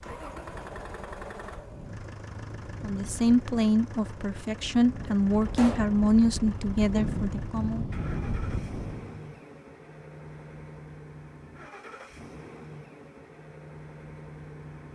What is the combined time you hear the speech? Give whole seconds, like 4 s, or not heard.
5 s.